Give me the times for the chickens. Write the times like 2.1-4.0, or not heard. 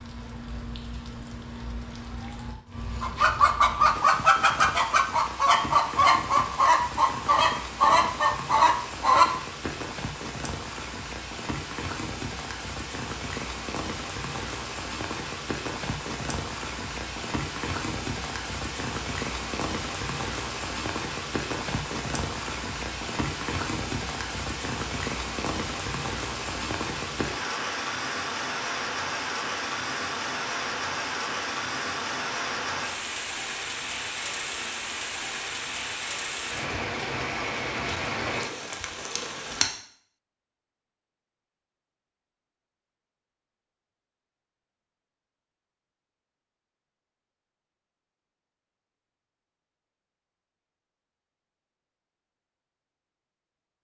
3.0-9.8.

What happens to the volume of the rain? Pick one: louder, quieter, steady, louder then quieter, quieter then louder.
louder.